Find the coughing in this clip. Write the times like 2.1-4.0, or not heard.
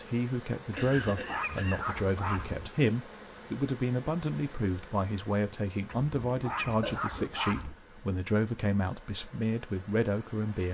0.8-2.0, 6.8-7.3.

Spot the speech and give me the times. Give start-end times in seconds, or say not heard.
0.0-10.6.